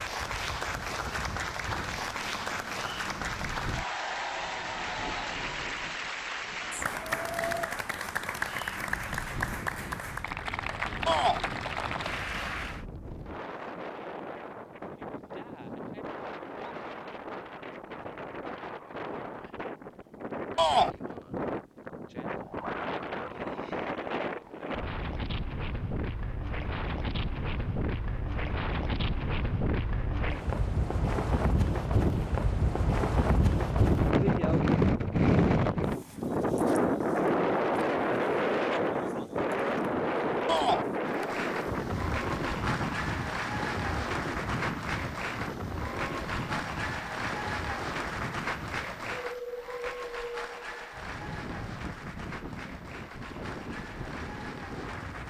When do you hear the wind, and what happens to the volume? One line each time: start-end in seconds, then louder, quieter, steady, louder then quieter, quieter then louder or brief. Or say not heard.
0.0-55.2 louder then quieter.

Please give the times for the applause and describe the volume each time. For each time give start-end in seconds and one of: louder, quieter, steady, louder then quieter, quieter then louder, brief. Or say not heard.
0.0-12.8 steady
41.0-55.2 quieter.